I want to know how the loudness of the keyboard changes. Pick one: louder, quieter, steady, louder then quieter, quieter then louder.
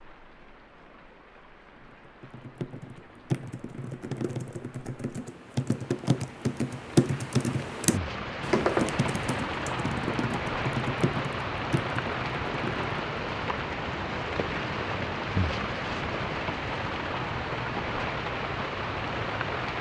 louder then quieter.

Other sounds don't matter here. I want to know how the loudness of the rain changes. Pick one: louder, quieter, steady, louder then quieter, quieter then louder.
louder.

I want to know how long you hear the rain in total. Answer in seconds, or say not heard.
20 s.